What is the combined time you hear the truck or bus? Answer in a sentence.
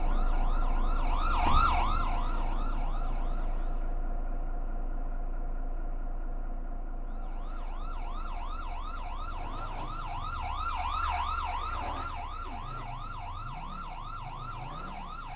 You can hear the truck or bus for 15 seconds altogether.